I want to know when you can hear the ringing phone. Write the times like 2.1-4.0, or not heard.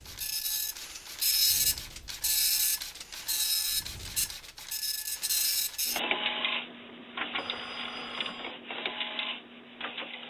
7.3-8.6.